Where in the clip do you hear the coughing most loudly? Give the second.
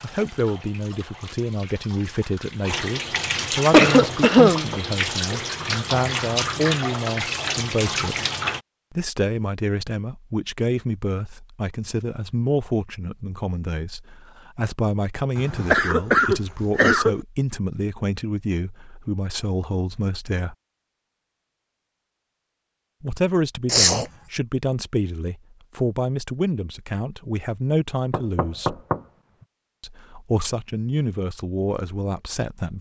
4 s.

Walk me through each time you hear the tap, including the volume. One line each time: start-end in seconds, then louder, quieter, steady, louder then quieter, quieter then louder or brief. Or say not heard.
0.0-8.6 louder.